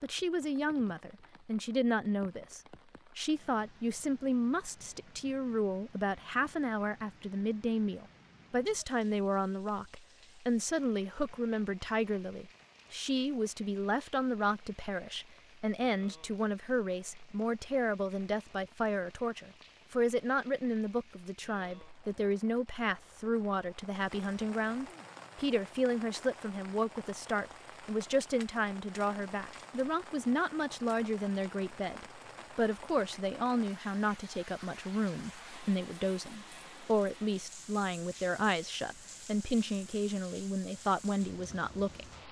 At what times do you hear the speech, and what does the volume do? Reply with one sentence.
You can hear the speech from 0.0 to 42.0 s, at a steady volume.